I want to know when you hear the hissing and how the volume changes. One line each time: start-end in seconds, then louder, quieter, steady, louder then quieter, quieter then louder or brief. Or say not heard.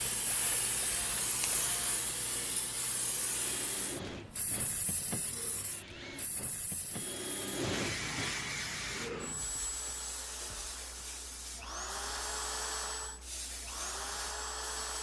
0.0-14.9 quieter.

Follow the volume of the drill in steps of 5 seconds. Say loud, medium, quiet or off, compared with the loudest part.
medium, loud, loud.